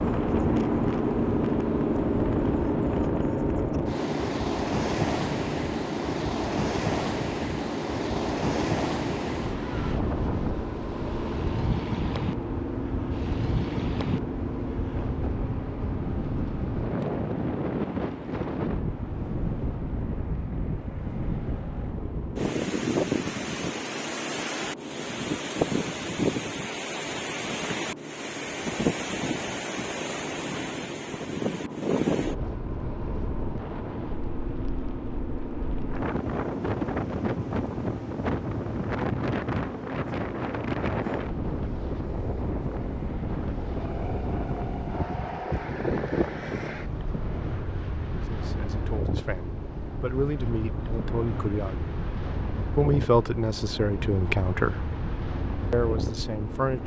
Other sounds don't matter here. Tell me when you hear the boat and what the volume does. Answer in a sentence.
You can hear the boat from 0.0 to 56.8 s, getting quieter.